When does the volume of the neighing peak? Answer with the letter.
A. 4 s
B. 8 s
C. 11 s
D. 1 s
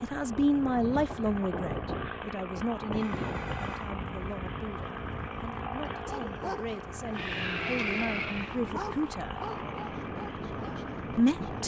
B.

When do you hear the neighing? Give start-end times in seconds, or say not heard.
2.9-3.9, 7.1-8.6.